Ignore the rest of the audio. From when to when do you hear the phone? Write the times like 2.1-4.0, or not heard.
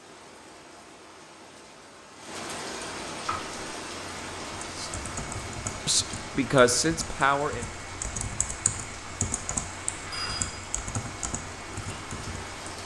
9.8-10.6.